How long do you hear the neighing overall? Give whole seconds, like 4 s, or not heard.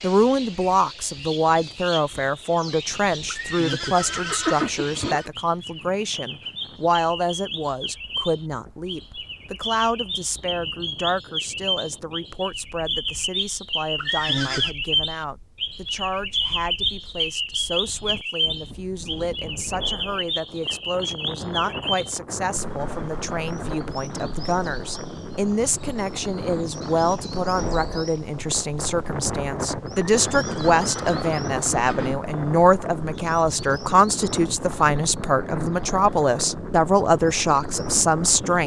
5 s.